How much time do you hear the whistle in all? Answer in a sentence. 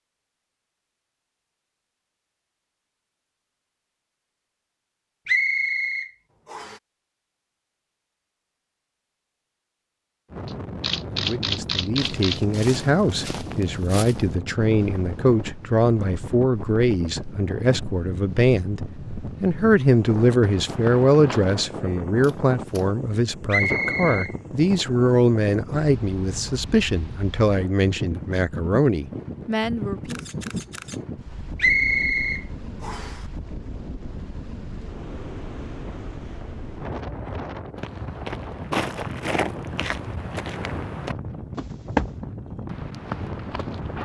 You can hear the whistle for 4 seconds altogether.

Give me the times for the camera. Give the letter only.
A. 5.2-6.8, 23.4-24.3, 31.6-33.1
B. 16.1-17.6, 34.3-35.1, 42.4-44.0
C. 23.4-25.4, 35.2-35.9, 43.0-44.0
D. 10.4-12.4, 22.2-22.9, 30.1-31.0
D.